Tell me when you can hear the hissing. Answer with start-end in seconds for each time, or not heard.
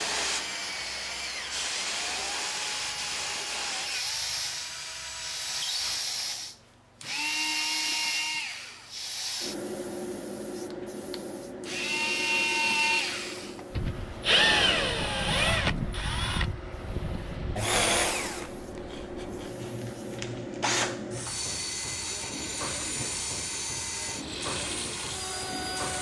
0.0-25.9.